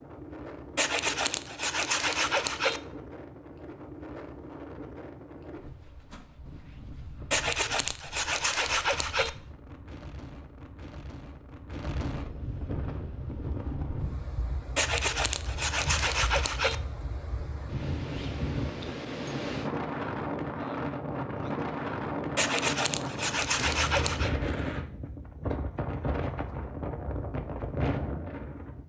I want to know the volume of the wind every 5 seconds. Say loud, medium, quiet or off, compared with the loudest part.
medium, quiet, medium, loud, loud, loud.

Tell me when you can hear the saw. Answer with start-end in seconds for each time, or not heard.
0.8-2.8, 7.3-9.3, 14.8-16.8, 22.4-24.3.